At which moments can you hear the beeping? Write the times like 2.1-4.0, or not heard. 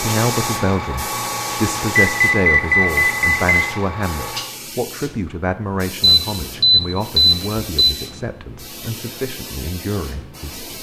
1.9-3.4, 6.2-8.0.